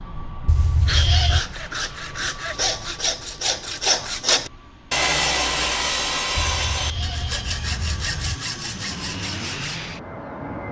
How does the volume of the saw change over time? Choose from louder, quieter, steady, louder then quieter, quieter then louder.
louder then quieter.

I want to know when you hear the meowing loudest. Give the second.
1 s.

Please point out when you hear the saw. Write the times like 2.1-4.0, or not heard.
0.8-9.8.